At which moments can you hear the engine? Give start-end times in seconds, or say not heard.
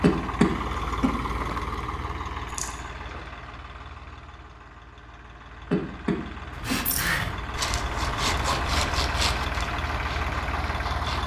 0.0-11.2.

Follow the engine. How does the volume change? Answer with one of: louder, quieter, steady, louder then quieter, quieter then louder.
quieter then louder.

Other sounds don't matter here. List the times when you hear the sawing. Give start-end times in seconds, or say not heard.
6.5-11.2.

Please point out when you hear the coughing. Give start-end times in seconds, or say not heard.
0.0-1.1, 5.7-7.0.